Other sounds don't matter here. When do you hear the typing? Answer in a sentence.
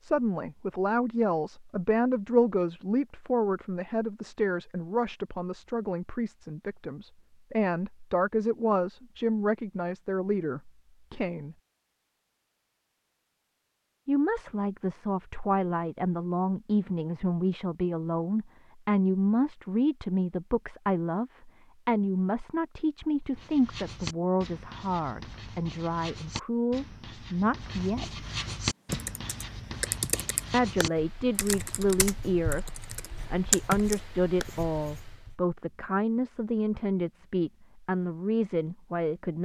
The typing can be heard from 28.9 to 34.5 s.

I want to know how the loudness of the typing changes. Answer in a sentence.
The loudness of the typing goes down, then up.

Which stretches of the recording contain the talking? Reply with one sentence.
The talking can be heard from 0.0 to 11.6 s, from 14.1 to 28.1 s, from 30.5 to 32.7 s and from 33.3 to 39.4 s.